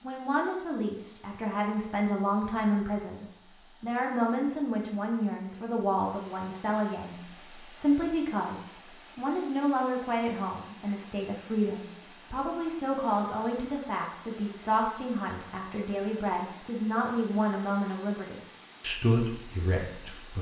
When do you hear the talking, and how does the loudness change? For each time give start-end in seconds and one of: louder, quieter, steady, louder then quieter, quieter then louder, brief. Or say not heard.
0.0-20.3 steady.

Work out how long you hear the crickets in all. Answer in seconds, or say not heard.
20 s.